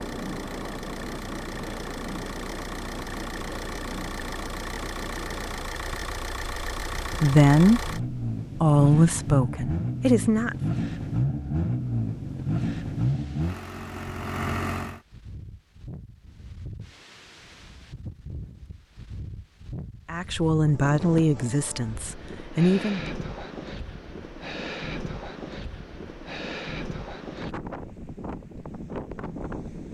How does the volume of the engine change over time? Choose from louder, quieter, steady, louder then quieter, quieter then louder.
louder.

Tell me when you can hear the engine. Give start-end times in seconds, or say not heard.
0.0-15.0.